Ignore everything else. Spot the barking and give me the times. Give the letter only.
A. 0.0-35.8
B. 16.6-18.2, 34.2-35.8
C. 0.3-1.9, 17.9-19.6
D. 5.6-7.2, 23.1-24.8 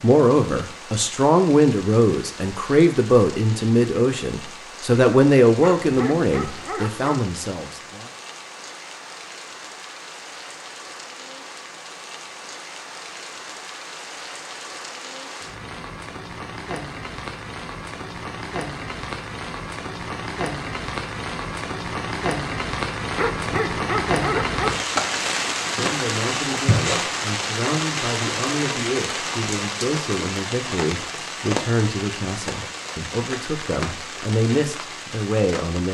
D.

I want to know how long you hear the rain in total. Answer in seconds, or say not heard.
36 s.